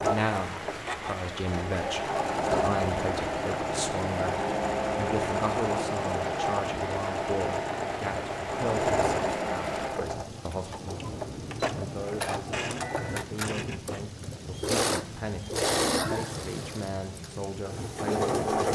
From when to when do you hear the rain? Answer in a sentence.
You can hear the rain from 0.0 to 18.7 s.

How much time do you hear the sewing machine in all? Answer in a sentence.
The sewing machine can be heard for 19 seconds in total.